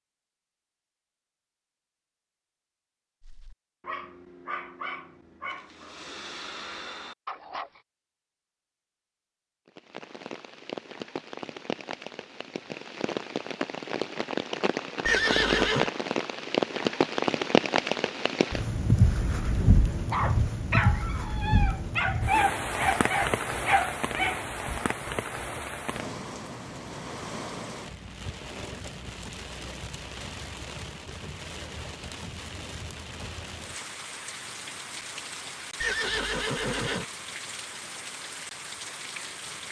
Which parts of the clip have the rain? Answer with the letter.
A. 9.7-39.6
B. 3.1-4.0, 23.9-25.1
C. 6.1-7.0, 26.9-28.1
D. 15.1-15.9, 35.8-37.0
A.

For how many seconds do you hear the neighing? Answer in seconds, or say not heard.
2 s.